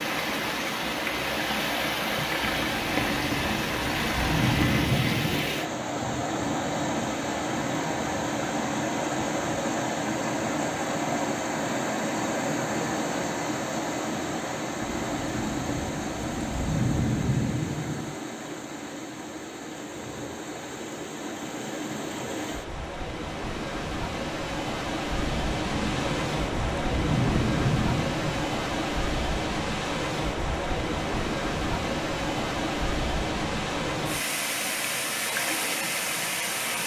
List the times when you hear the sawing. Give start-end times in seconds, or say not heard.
not heard.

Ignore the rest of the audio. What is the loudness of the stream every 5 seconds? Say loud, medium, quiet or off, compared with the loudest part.
loud, loud, loud, medium, medium, loud, loud, loud.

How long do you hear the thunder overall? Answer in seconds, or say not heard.
10 s.